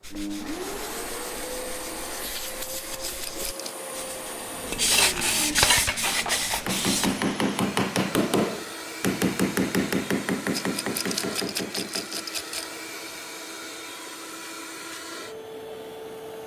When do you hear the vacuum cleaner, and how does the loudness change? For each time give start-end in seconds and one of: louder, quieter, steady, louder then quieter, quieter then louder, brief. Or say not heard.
0.1-16.4 steady.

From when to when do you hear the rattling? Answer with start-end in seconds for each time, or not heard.
3.0-3.9, 10.5-12.7.